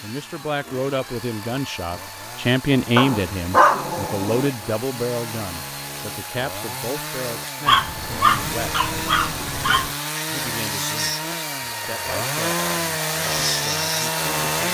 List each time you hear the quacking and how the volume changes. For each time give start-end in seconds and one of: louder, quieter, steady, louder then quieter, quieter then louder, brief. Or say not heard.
not heard.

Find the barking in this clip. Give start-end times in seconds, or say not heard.
3.0-4.5, 7.7-9.9.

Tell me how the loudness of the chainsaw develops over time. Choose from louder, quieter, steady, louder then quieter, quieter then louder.
louder.